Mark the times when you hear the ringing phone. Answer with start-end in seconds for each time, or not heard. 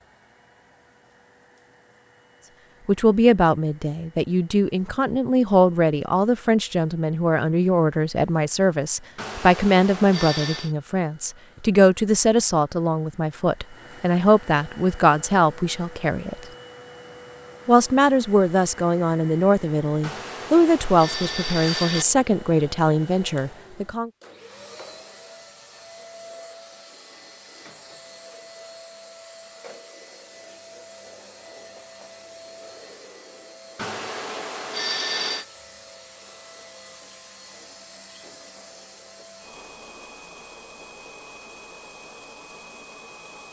9.2-10.8, 20.0-22.1, 33.8-35.5.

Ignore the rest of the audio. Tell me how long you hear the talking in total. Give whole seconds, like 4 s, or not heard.
20 s.